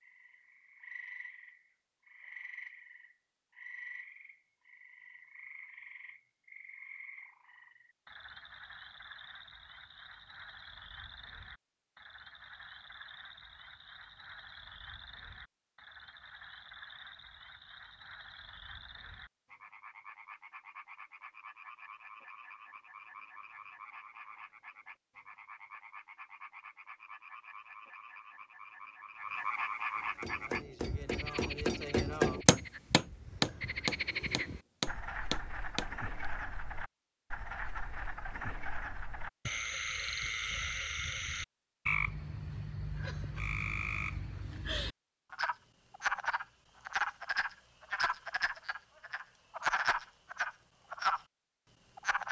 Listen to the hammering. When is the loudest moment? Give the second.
32 s.